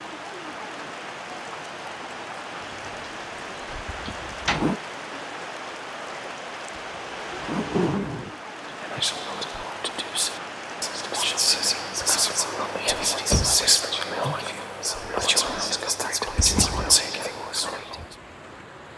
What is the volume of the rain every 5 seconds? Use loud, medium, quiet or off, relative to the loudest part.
loud, loud, loud, medium.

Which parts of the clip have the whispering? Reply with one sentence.
The whispering can be heard from 8.8 to 18.1 s.